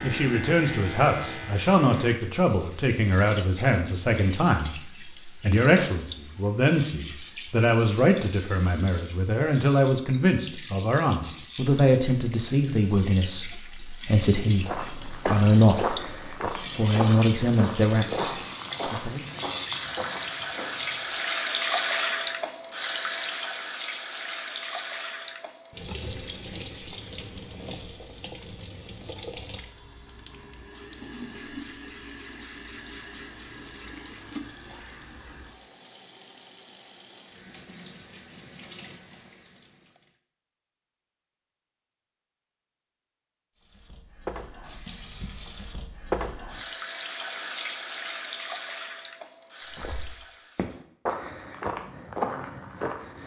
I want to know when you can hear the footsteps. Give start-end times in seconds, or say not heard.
14.6-21.2, 49.8-53.2.